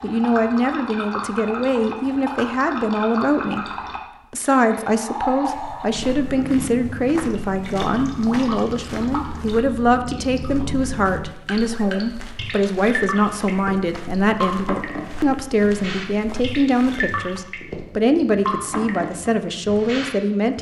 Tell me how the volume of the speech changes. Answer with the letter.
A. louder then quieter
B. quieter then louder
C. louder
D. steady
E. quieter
D.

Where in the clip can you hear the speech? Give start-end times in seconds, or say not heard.
0.0-20.5.